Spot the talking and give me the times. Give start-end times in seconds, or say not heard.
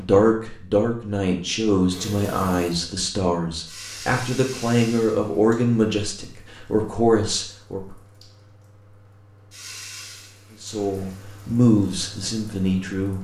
0.0-8.0, 10.6-13.1.